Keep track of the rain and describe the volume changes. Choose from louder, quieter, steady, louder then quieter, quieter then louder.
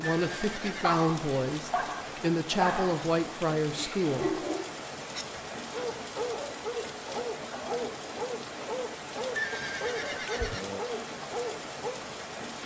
steady.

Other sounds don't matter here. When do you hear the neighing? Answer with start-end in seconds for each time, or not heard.
0.0-0.9, 9.3-10.8.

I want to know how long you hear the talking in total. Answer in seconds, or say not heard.
4 s.